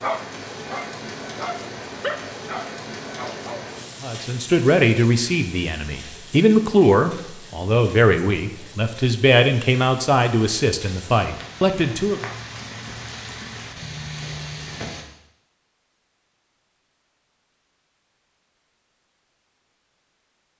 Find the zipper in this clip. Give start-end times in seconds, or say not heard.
not heard.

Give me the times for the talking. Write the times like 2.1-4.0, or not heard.
4.0-12.2.